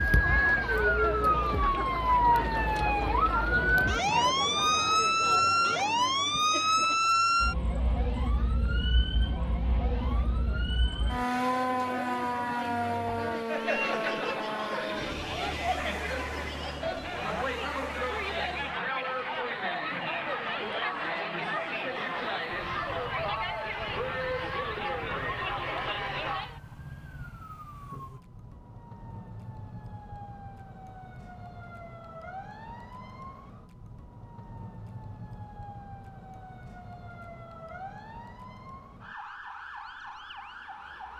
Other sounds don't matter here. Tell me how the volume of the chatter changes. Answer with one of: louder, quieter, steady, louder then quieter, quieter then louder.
quieter then louder.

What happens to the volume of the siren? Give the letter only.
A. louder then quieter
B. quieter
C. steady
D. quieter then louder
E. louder
B.